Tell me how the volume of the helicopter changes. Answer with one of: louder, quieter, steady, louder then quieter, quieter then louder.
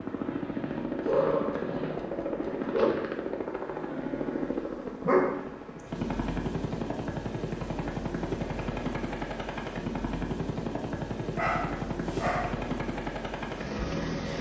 steady.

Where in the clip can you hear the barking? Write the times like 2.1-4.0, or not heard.
1.1-2.9, 5.0-5.8, 11.3-12.5.